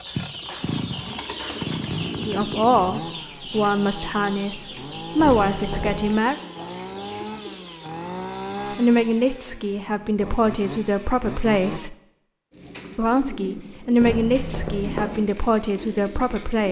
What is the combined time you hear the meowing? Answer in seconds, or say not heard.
2 s.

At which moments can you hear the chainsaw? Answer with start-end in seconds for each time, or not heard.
0.0-11.9.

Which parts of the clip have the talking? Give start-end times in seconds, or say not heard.
2.2-6.3, 8.7-11.9, 12.9-16.6.